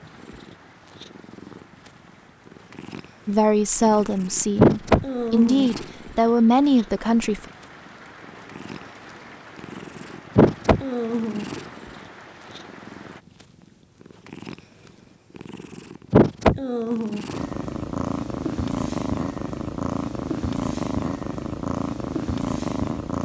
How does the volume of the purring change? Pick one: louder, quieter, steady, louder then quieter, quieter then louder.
steady.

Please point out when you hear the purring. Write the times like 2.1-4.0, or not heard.
0.0-23.2.